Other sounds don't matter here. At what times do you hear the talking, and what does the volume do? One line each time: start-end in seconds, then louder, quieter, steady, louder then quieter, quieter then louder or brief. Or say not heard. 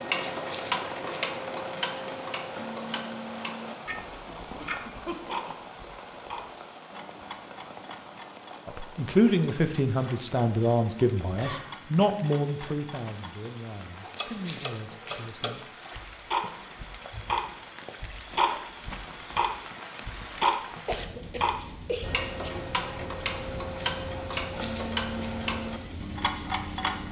8.7-15.7 quieter.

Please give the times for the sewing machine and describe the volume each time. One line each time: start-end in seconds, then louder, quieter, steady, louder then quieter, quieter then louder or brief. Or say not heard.
not heard.